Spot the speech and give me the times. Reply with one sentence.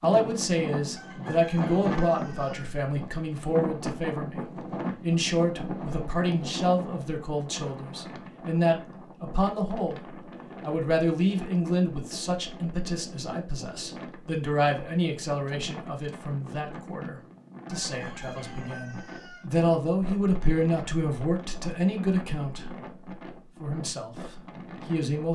You can hear the speech from 0.0 to 22.8 s and from 23.6 to 25.3 s.